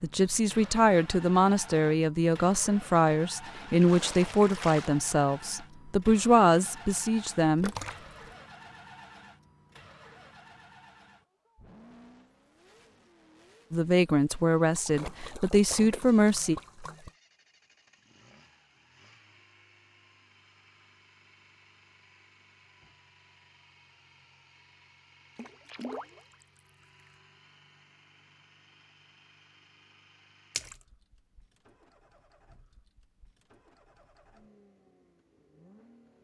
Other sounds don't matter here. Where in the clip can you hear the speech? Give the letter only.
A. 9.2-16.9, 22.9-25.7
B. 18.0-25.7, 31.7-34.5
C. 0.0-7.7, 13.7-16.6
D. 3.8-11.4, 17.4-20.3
C.